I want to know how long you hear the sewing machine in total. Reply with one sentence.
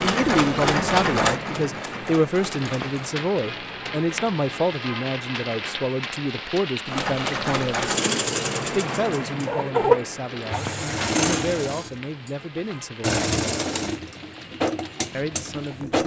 The sewing machine can be heard for 12 seconds in total.